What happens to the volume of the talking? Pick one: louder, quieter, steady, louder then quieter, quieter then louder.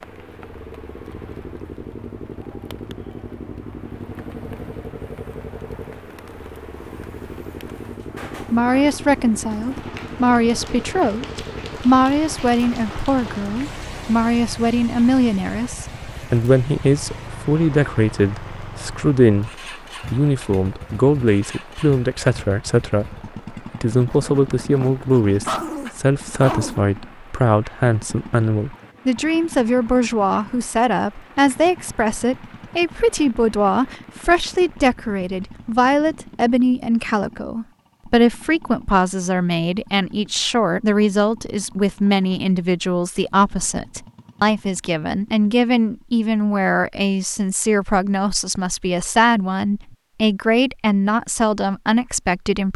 steady.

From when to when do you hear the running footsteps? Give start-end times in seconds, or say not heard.
not heard.